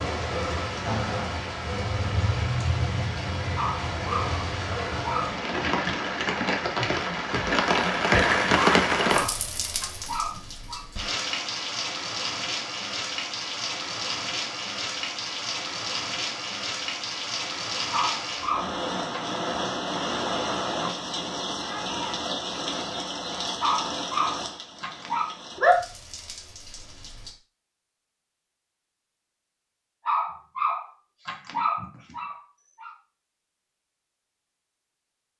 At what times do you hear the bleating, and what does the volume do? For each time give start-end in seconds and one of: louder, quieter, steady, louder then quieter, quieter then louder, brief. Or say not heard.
not heard.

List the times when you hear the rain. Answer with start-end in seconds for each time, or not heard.
0.0-27.4.